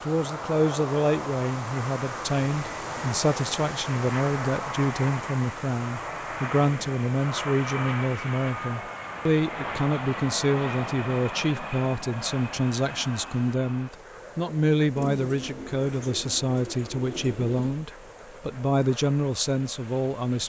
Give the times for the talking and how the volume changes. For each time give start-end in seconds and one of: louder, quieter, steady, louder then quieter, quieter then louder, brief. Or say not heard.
0.0-20.4 steady.